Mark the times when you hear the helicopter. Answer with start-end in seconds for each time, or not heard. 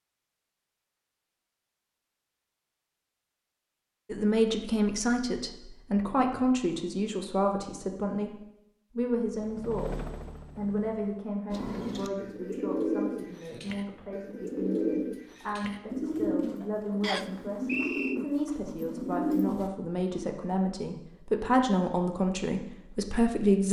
9.2-11.2.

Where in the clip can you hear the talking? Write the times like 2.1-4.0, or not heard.
4.1-23.6.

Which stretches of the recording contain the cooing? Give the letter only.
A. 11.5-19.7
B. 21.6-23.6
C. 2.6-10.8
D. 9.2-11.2
A.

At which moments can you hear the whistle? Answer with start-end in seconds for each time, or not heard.
17.0-18.2.